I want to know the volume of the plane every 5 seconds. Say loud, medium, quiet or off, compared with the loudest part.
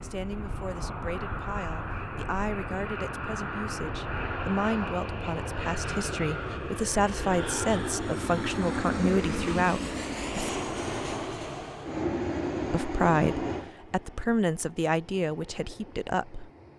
loud, loud, loud, quiet.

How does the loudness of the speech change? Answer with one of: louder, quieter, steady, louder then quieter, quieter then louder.
louder.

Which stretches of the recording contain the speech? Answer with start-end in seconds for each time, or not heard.
0.0-10.6, 12.7-16.5.